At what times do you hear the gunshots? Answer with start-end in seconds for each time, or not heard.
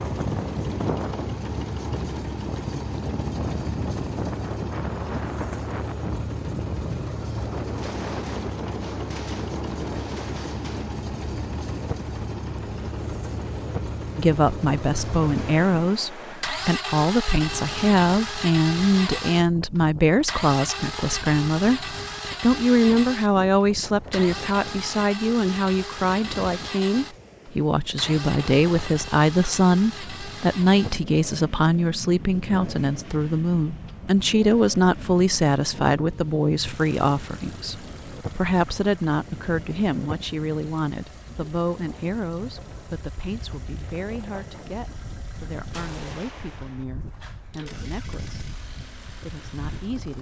7.8-10.9, 45.7-46.9.